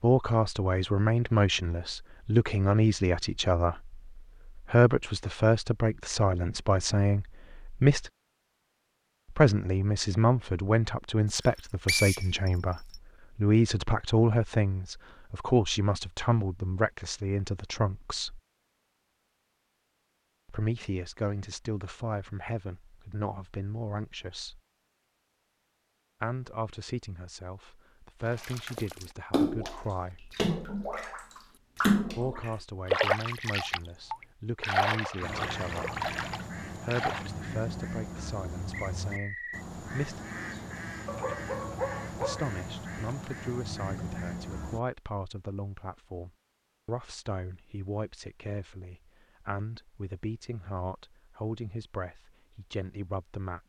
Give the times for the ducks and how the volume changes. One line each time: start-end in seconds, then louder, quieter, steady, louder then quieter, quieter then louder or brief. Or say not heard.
35.2-44.8 steady.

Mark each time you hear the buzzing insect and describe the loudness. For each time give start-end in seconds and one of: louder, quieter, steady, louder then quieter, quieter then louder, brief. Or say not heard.
not heard.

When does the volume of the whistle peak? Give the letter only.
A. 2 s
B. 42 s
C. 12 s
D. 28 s
C.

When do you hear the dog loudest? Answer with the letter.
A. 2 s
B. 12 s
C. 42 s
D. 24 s
C.